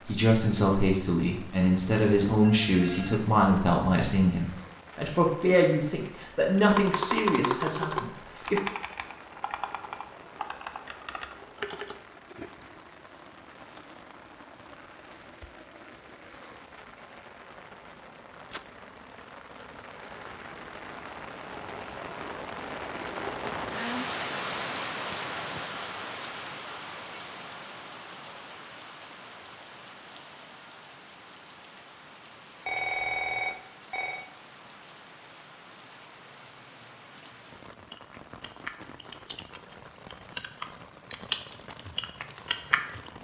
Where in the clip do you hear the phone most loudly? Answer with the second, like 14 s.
33 s.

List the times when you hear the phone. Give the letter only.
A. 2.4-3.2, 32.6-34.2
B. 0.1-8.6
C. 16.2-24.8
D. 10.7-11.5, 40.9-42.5
A.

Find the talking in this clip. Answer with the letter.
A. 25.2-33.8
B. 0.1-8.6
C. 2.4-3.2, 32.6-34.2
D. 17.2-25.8
B.